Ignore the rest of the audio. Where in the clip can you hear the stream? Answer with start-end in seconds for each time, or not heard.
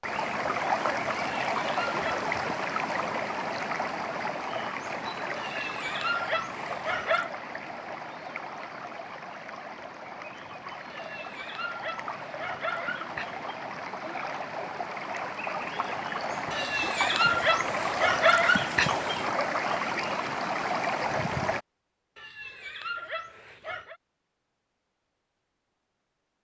0.0-21.6.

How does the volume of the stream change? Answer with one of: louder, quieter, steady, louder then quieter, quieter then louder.
quieter then louder.